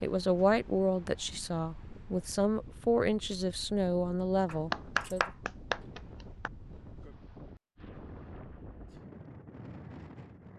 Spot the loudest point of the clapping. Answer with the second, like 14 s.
5 s.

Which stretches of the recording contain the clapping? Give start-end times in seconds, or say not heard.
4.5-6.5.